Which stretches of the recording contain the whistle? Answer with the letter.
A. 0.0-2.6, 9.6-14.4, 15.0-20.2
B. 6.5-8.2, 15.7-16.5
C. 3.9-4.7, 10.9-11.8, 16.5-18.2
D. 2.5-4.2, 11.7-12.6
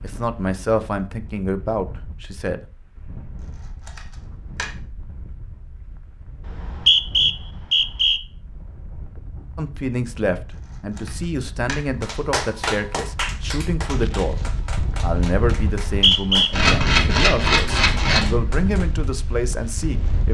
B.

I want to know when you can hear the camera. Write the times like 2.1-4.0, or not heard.
3.9-4.7, 10.9-11.8, 16.5-18.2.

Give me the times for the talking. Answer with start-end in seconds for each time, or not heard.
0.0-2.6, 9.6-14.4, 15.0-20.2.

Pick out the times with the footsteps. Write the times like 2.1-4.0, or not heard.
not heard.